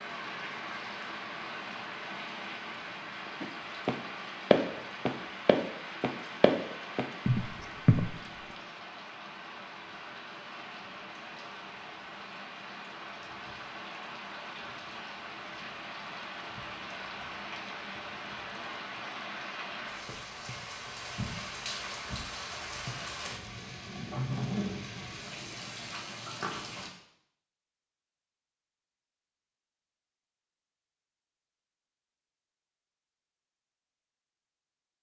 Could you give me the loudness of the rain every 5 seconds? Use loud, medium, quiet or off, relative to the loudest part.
loud, medium, medium, loud, loud, loud, off.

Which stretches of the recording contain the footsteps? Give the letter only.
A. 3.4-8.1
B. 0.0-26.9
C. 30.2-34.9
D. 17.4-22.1
A.